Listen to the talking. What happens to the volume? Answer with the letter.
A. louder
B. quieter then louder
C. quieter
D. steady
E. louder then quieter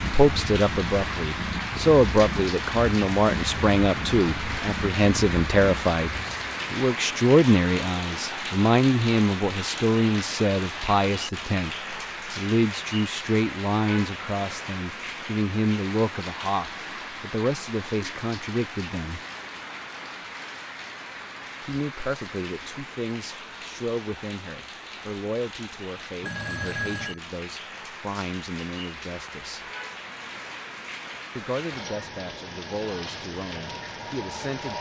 C.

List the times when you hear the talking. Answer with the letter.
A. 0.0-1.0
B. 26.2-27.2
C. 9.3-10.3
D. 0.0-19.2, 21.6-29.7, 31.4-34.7
D.